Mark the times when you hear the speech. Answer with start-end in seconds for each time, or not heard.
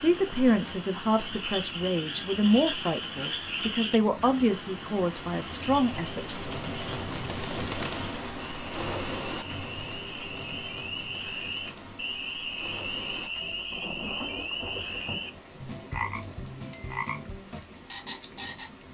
0.0-6.5.